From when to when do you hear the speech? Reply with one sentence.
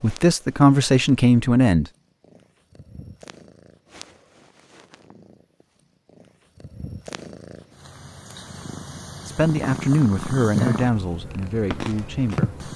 The speech can be heard from 0.0 to 1.9 s and from 9.2 to 12.6 s.